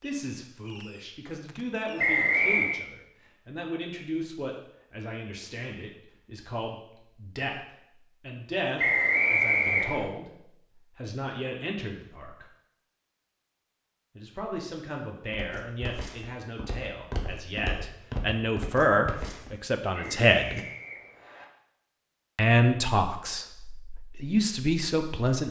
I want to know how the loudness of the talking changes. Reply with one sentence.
The loudness of the talking goes up.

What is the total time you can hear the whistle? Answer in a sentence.
The whistle can be heard for 4 seconds in total.